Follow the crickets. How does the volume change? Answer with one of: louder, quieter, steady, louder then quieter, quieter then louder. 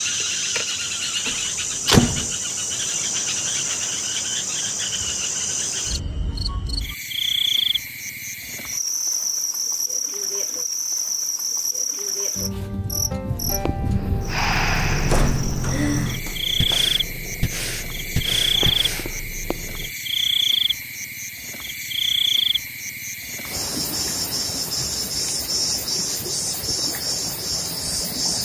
steady.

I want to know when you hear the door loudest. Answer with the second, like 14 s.
2 s.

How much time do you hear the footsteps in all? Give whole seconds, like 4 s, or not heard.
not heard.